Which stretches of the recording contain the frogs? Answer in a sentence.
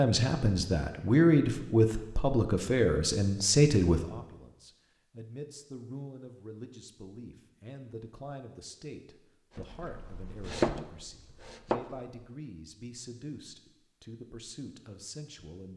The frogs can't be heard in this clip.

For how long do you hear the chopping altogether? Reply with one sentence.
You can hear the chopping for 3 seconds altogether.